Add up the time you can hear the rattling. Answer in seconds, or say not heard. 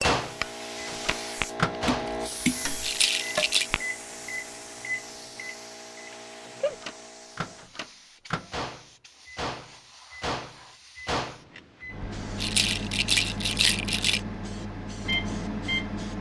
3 s.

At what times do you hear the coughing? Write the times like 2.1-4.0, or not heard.
not heard.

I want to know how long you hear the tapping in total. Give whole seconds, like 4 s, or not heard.
4 s.